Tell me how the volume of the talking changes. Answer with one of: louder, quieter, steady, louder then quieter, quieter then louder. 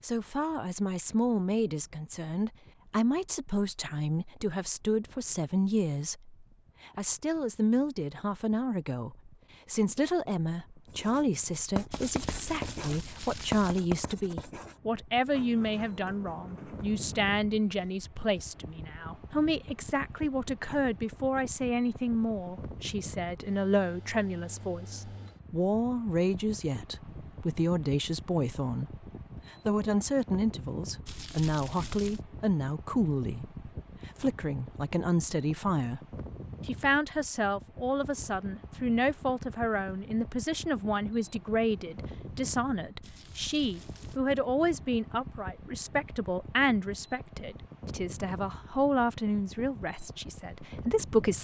steady.